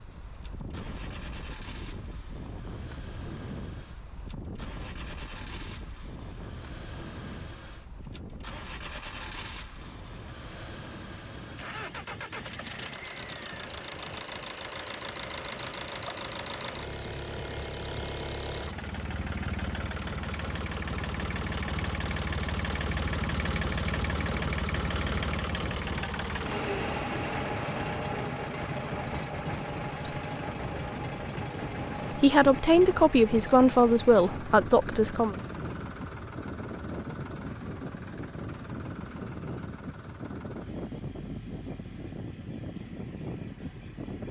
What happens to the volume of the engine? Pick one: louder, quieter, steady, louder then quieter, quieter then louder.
louder then quieter.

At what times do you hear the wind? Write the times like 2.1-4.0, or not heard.
0.0-44.2.